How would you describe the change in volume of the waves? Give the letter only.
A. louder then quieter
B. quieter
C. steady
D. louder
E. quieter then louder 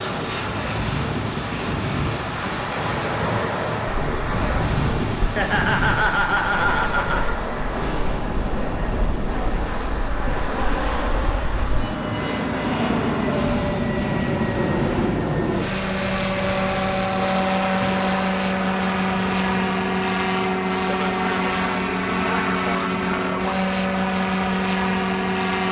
B.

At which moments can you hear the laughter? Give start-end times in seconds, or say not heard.
5.3-7.3.